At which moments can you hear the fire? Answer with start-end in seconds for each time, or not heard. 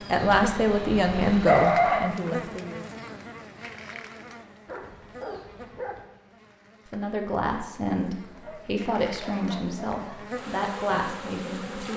not heard.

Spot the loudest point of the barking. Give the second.
2 s.